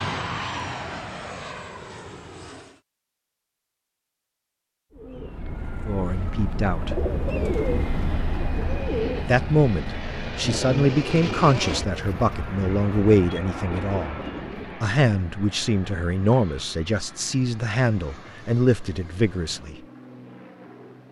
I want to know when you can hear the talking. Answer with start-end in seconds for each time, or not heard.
5.8-7.0, 9.2-14.2, 14.8-19.8.